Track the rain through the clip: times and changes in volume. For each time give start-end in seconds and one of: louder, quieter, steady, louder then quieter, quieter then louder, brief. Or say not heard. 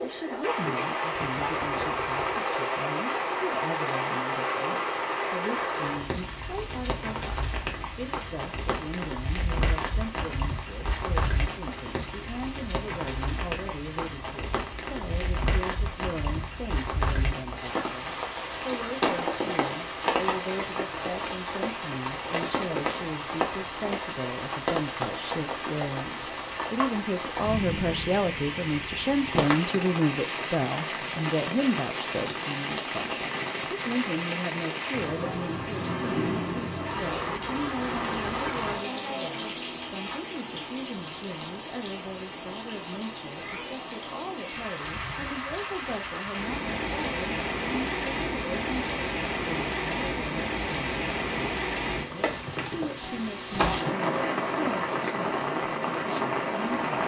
0.0-57.0 steady.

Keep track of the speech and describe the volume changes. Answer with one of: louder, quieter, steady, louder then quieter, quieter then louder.
louder then quieter.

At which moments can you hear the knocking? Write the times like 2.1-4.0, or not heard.
1.1-2.2.